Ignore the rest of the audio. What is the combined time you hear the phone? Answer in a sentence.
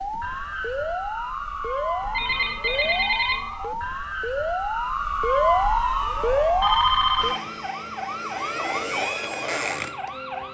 The phone can be heard for 2 seconds in total.